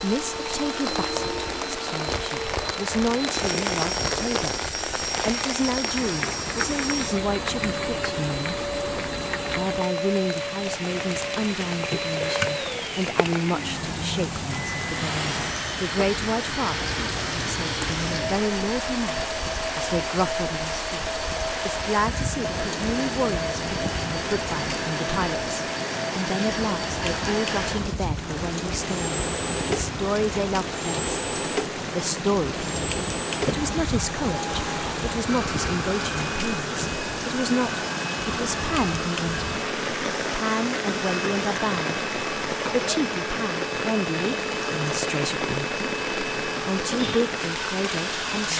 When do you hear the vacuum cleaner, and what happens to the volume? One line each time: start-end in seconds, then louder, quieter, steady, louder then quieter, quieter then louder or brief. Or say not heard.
0.0-48.5 steady.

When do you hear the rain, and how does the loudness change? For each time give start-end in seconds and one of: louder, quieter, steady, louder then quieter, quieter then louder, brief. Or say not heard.
0.0-48.5 steady.